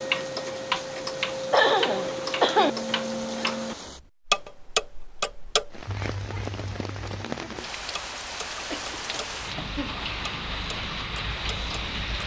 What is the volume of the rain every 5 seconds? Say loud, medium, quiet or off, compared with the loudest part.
medium, loud, loud.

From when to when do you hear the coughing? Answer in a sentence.
You can hear the coughing from 1.5 to 2.7 s and from 8.7 to 10.0 s.